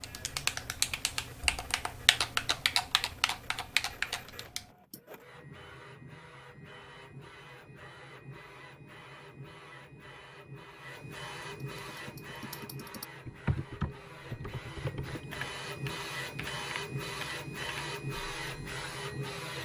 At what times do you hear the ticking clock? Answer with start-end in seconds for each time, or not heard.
not heard.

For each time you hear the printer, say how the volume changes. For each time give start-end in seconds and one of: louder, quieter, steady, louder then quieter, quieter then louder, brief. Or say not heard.
0.0-19.6 louder.